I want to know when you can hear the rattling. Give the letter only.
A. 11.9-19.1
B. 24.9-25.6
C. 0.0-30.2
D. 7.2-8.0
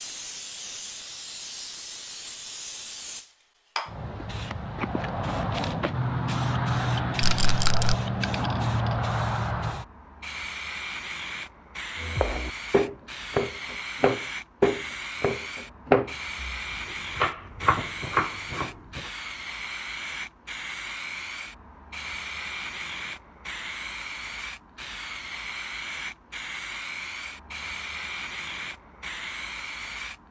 D.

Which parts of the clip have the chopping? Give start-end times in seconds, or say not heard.
11.9-19.1.